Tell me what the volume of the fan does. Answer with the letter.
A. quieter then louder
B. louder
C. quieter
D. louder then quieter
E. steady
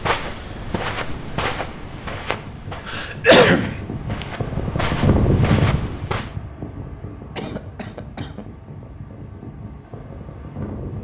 D.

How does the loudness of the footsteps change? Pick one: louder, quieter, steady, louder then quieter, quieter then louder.
quieter then louder.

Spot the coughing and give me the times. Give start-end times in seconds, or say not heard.
2.9-3.8, 7.3-8.4.